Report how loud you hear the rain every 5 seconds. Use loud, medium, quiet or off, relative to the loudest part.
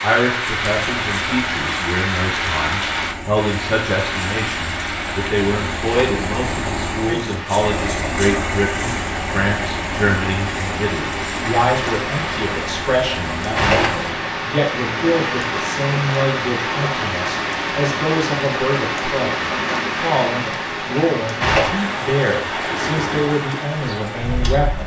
loud, medium, loud, loud, loud.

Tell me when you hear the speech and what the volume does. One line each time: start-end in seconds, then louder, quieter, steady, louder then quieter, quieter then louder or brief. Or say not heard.
0.0-24.8 steady.